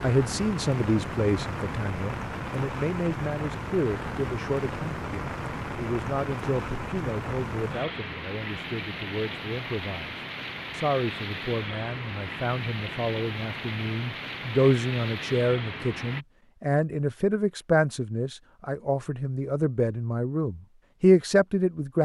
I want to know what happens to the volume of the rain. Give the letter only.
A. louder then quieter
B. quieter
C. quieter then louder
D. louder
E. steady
E.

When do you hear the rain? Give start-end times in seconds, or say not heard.
0.0-16.2.